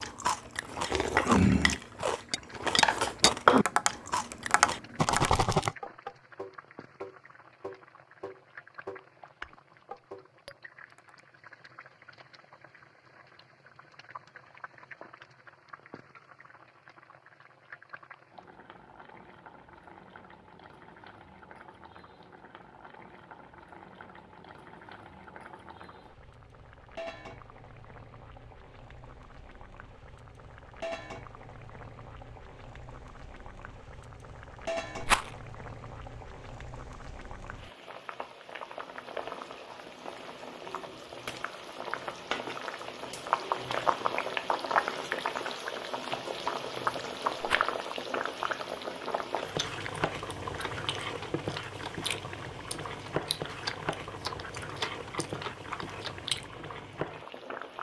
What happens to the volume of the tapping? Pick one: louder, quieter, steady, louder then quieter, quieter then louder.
quieter.